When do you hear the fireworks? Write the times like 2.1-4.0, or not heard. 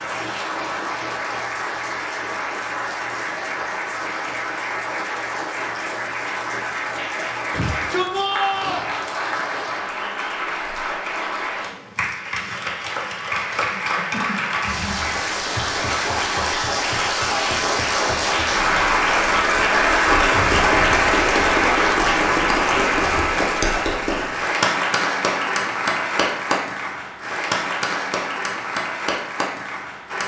not heard.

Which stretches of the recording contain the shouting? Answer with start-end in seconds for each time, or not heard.
7.5-8.9.